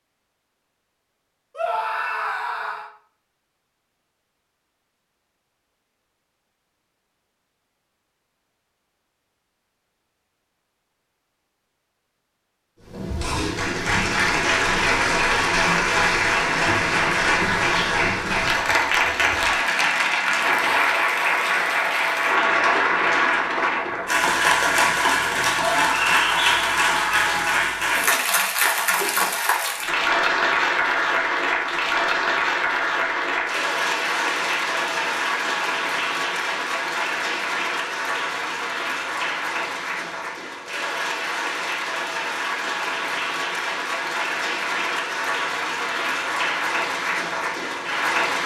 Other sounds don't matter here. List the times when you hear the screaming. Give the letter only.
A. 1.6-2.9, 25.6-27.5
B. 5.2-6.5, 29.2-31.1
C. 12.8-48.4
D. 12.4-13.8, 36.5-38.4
A.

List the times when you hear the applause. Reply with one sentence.
You can hear the applause from 12.8 to 48.4 s.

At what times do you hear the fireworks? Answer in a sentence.
You can't hear the fireworks here.